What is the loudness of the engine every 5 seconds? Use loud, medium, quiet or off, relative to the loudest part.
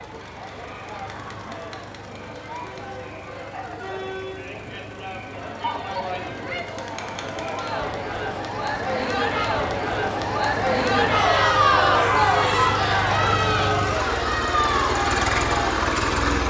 quiet, quiet, medium, loud.